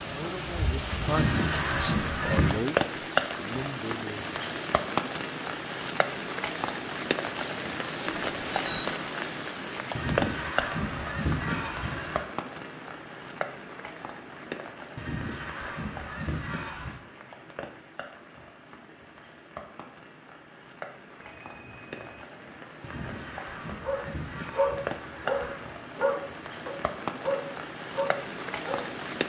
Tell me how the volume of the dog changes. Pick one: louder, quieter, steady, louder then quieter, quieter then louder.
quieter.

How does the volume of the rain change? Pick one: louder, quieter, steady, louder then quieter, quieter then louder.
quieter then louder.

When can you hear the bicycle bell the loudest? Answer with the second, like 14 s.
9 s.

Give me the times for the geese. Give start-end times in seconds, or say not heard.
1.1-2.6, 9.9-12.2, 14.9-17.0, 22.8-25.7.